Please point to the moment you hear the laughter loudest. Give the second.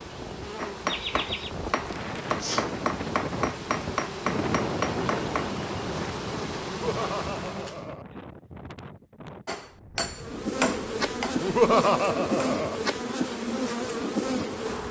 12 s.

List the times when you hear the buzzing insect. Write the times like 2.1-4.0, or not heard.
0.0-7.9, 10.1-14.8.